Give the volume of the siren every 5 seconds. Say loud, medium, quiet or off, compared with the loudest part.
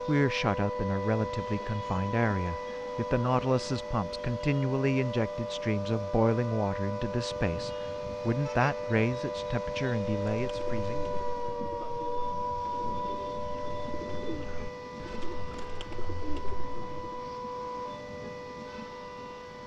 loud, loud, loud, medium.